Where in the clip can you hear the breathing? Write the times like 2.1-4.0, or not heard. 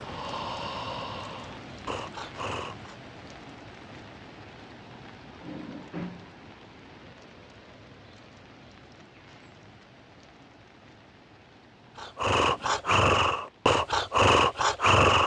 0.0-3.0, 11.9-15.2.